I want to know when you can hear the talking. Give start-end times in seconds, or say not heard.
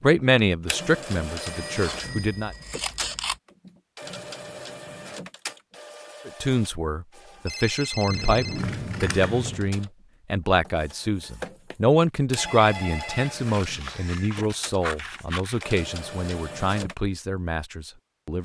0.0-2.5, 6.2-18.4.